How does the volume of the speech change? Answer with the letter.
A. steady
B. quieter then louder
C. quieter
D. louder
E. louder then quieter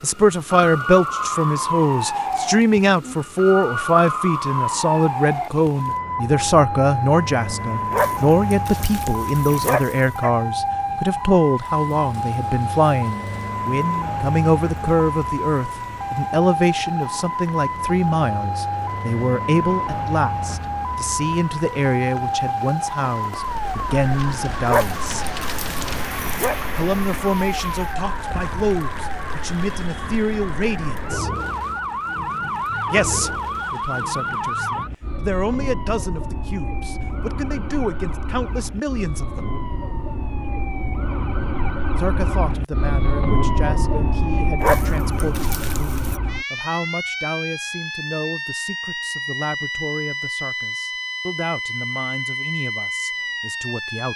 C.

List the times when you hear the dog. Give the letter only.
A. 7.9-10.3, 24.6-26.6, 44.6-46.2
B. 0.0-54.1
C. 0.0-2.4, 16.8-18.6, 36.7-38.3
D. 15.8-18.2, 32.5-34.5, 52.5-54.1
A.